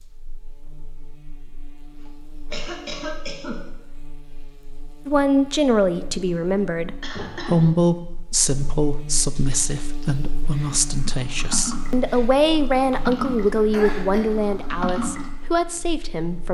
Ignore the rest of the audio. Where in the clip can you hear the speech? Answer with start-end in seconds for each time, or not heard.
5.0-16.5.